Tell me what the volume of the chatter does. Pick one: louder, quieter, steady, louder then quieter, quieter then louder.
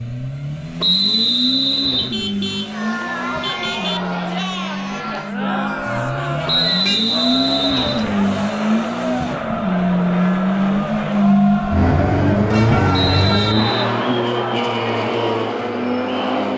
steady.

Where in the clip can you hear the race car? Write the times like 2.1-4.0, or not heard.
0.0-16.5.